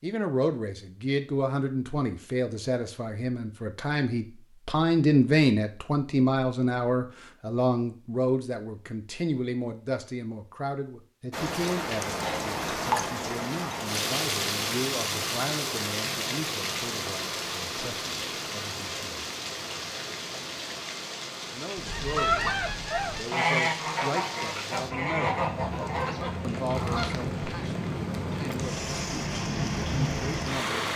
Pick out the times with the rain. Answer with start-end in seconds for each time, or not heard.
11.3-30.9.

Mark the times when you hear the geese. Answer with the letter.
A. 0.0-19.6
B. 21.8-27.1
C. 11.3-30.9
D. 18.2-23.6
B.